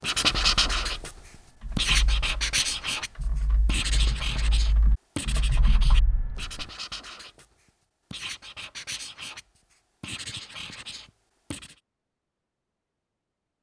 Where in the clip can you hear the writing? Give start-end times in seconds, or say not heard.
0.0-1.1, 1.8-11.8.